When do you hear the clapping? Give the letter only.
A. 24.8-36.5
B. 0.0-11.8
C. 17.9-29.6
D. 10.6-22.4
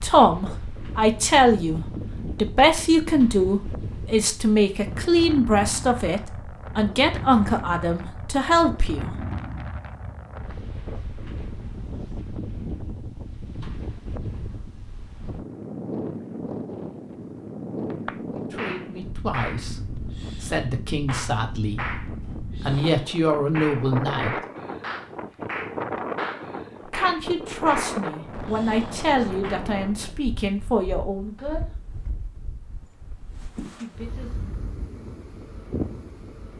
C.